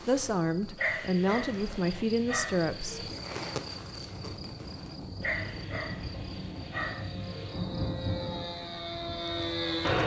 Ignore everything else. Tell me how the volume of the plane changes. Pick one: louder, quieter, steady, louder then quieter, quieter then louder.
louder.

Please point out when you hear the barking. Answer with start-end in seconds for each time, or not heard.
0.8-3.1, 5.2-7.5.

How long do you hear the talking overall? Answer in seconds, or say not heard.
3 s.